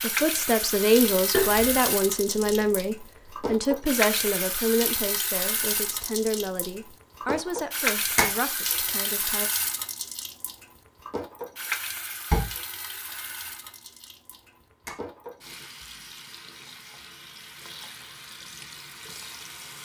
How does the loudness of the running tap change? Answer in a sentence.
The volume of the running tap goes down.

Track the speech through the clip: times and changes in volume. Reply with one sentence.
You can hear the speech from 0.0 to 9.5 s, getting quieter.